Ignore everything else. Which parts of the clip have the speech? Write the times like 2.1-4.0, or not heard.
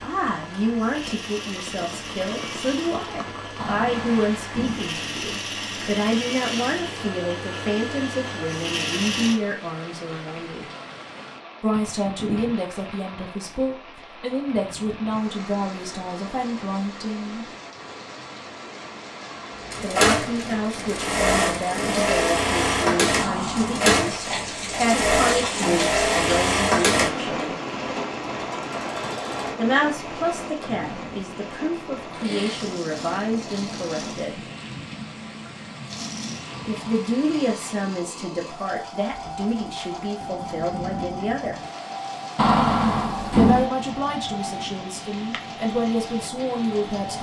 0.0-10.7, 11.6-17.4, 19.8-27.6, 29.6-34.5, 36.6-41.6, 43.4-47.1.